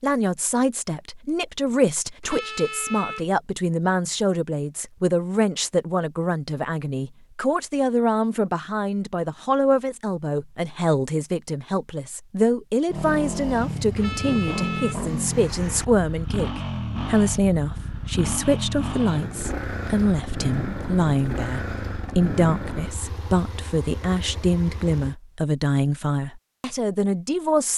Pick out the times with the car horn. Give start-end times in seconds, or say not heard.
2.2-3.2, 13.9-15.8.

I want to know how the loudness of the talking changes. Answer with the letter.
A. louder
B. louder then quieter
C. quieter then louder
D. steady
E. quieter
D.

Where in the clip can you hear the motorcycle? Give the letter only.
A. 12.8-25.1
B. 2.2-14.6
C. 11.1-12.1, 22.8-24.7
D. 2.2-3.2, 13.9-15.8
A.